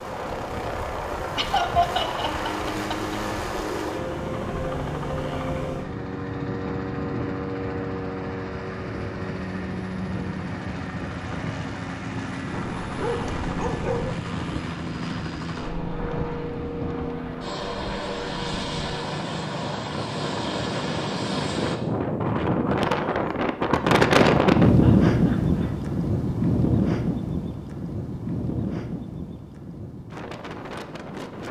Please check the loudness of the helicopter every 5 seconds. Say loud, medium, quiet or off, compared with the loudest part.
loud, loud, loud, loud, loud, off, off.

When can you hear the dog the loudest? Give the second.
14 s.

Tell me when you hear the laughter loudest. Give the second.
2 s.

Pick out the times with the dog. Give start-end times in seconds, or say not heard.
12.5-14.2.